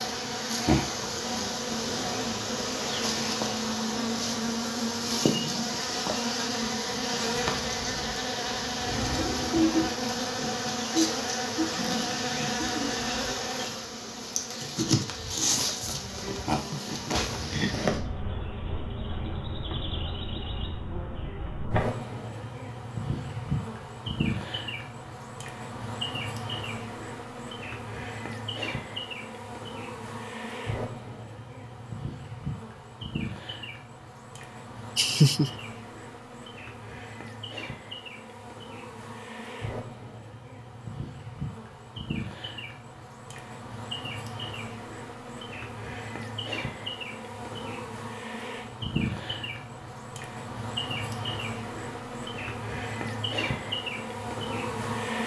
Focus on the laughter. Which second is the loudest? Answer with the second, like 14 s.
35 s.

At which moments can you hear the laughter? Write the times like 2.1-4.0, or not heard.
16.5-17.8, 35.0-35.5.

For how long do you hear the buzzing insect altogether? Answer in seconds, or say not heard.
55 s.